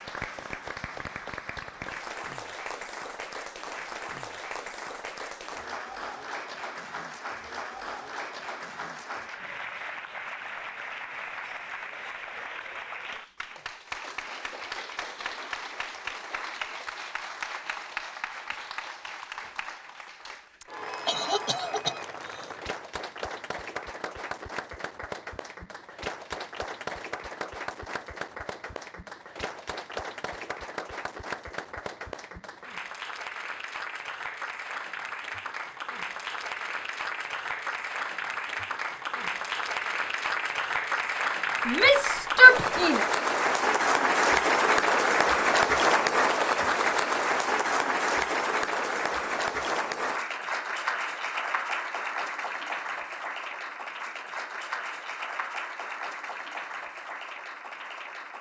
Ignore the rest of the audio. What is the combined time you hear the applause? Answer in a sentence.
You can hear the applause for 58 seconds altogether.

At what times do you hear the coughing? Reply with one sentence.
You can hear the coughing from 21.1 to 22.4 s.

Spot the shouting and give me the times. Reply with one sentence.
You can hear the shouting from 41.6 to 43.0 s.